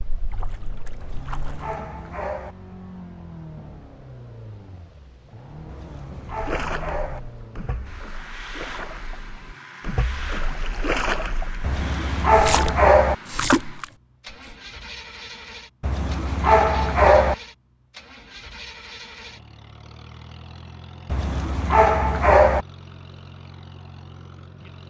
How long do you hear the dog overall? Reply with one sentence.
You can hear the dog for 8 seconds altogether.